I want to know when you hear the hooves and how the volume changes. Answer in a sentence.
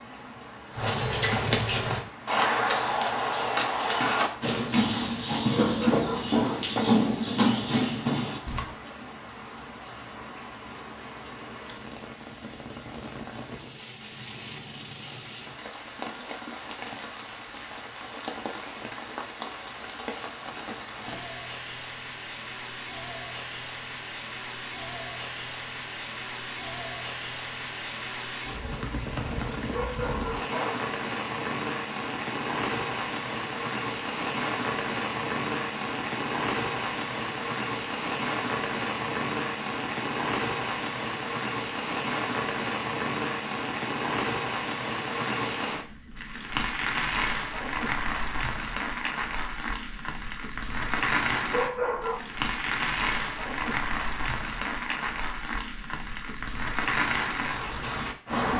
The hooves can be heard from 0.7 to 8.7 s, at a steady volume.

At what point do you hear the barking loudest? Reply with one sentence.
The volume of the barking peaks at 52 seconds.